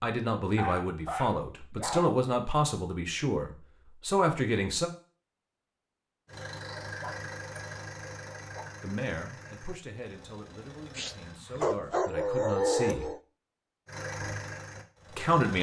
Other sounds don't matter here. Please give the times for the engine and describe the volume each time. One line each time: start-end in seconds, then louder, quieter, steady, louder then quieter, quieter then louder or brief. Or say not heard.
6.2-11.4 quieter
13.8-15.5 brief.